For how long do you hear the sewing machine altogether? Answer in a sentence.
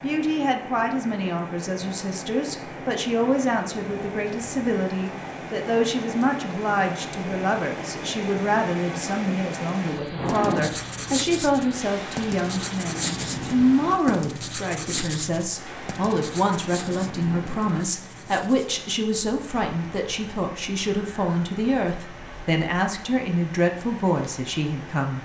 You can't hear the sewing machine here.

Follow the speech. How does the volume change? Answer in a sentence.
The loudness of the speech stays about the same.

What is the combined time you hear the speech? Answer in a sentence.
The speech can be heard for 25 seconds in total.